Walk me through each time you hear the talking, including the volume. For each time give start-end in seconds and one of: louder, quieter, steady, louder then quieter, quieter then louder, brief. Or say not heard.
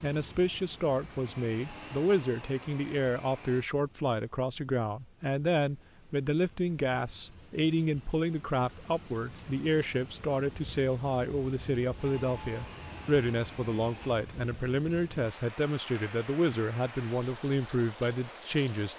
0.0-18.9 steady.